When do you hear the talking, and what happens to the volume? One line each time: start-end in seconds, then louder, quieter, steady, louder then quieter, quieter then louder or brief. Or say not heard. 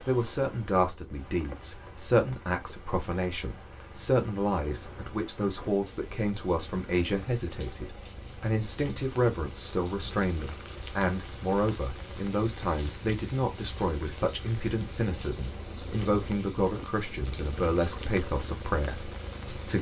0.1-19.7 steady.